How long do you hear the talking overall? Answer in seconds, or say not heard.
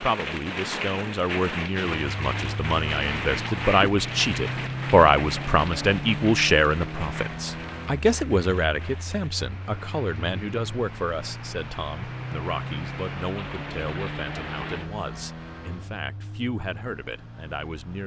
18 s.